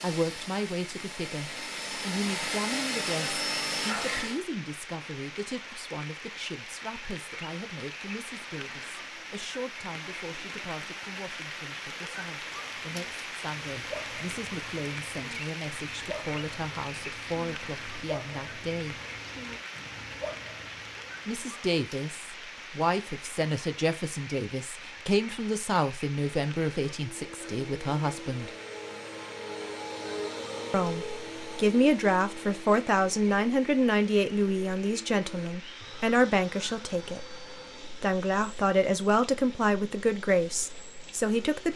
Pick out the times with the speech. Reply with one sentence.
The speech can be heard from 0.0 to 18.9 s, from 21.2 to 28.5 s and from 30.7 to 41.7 s.